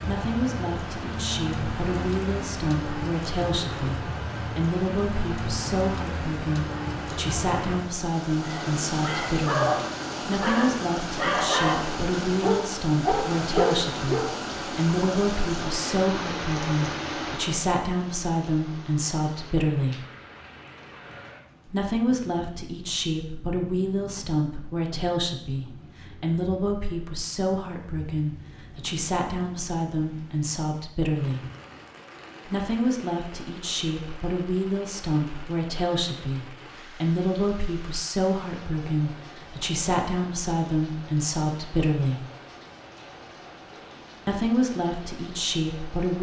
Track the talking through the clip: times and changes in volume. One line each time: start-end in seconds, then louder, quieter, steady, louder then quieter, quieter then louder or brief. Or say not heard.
0.0-20.0 steady
21.6-31.4 steady
32.5-42.2 steady
44.2-46.1 brief.